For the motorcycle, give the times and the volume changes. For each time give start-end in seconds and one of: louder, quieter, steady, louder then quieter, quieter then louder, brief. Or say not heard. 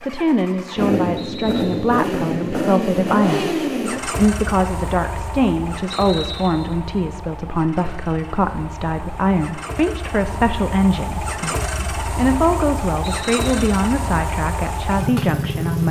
0.0-15.8 quieter then louder.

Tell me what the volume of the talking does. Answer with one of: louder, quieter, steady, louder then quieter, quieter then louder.
steady.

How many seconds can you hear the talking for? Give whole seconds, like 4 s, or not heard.
16 s.